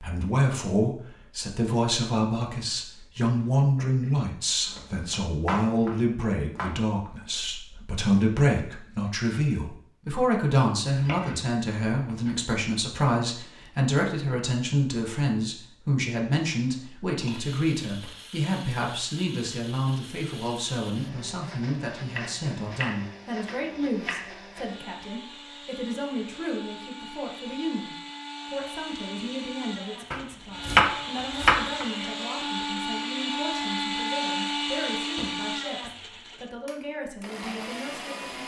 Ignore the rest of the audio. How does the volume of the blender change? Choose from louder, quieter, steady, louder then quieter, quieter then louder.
louder.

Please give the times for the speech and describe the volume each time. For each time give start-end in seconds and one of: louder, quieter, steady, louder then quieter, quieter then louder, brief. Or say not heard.
0.0-38.4 quieter.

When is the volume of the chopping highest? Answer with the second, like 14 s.
31 s.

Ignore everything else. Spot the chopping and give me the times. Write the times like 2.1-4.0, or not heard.
4.7-6.8, 10.9-12.4, 22.1-24.4, 30.1-31.9.